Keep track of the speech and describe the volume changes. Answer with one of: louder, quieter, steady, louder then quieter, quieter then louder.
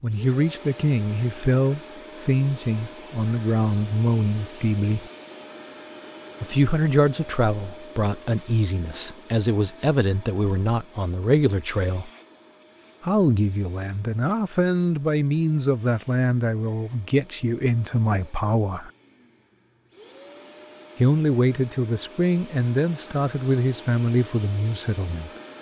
steady.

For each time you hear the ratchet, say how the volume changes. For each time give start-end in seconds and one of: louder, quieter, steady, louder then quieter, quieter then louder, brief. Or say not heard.
not heard.